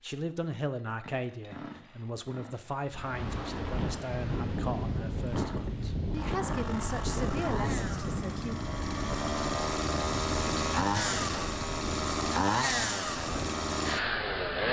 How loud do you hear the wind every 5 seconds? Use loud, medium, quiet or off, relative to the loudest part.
loud, loud, medium.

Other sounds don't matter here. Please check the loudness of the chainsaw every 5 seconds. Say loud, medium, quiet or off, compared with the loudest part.
quiet, medium, loud.